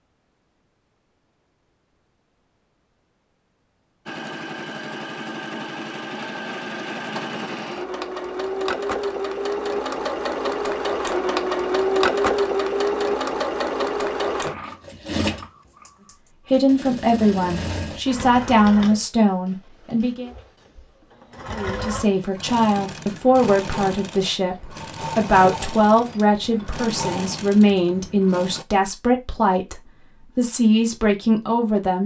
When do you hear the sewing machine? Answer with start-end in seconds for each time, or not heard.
4.0-28.6.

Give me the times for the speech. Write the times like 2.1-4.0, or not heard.
16.5-20.3, 21.5-32.0.